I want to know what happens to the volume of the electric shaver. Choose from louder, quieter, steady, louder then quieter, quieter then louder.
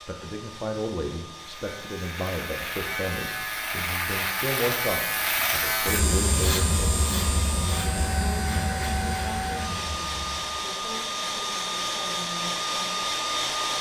louder then quieter.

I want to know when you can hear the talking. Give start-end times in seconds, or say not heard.
0.1-6.8, 8.3-13.0.